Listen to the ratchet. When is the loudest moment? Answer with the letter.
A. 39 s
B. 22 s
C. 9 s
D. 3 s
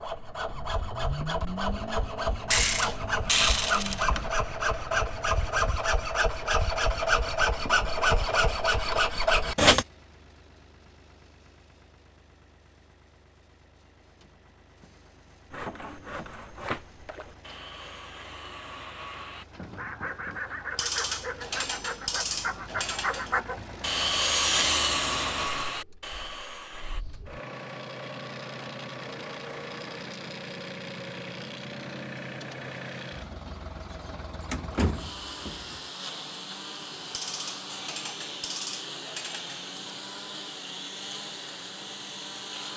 D.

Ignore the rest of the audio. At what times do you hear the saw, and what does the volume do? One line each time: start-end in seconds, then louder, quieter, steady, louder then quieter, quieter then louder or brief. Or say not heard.
0.0-9.8 louder
15.5-27.1 louder.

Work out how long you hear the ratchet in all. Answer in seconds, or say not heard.
7 s.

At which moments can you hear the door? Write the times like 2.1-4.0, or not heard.
34.5-35.8.